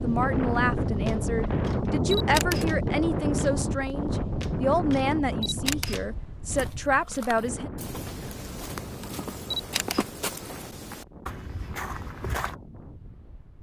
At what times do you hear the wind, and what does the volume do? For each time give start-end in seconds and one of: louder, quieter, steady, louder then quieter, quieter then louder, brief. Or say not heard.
0.0-13.5 quieter.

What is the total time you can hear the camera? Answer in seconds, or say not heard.
2 s.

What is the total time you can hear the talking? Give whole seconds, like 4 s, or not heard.
8 s.